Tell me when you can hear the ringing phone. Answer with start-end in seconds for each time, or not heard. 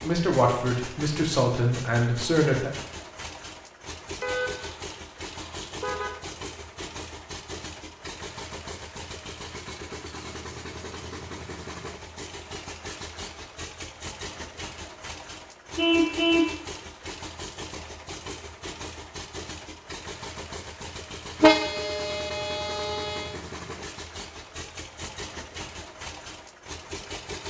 not heard.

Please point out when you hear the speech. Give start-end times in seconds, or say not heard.
0.0-2.7.